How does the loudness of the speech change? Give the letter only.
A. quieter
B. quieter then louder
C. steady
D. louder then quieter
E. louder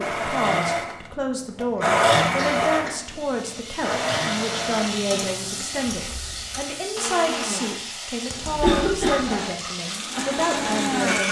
C.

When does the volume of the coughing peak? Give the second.
9 s.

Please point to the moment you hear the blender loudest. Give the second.
2 s.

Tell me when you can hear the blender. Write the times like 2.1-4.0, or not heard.
0.0-7.8, 9.2-11.2.